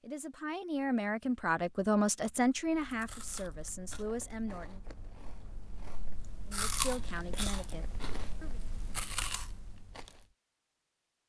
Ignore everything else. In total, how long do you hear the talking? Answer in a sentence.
You can hear the talking for 7 seconds altogether.